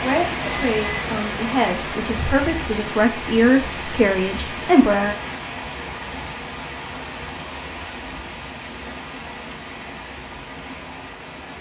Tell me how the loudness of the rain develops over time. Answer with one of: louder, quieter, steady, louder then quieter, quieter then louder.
quieter.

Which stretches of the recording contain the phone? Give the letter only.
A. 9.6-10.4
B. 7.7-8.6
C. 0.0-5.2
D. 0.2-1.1
D.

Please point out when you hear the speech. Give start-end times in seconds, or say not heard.
0.0-5.2.